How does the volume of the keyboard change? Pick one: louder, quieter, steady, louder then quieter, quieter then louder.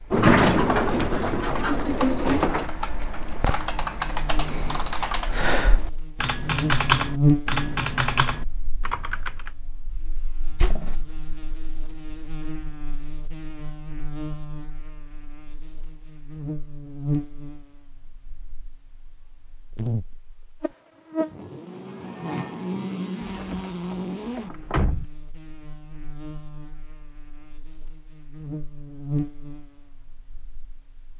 louder.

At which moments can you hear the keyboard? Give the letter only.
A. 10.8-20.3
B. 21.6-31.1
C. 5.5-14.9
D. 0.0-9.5
D.